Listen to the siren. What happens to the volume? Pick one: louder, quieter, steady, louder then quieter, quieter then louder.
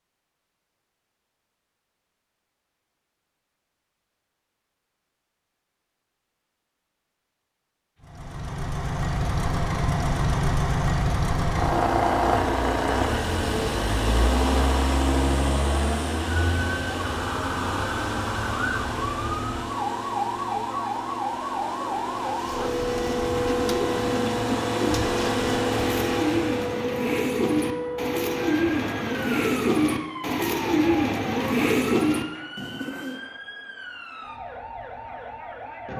quieter.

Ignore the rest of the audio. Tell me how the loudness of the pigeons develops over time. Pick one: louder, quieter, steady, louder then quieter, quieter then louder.
louder.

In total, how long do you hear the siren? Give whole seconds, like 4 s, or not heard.
20 s.